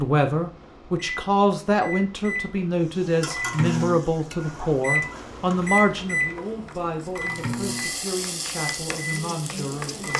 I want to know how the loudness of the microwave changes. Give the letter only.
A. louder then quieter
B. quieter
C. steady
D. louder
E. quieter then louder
A.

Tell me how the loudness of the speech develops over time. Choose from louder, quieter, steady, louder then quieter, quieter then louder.
quieter.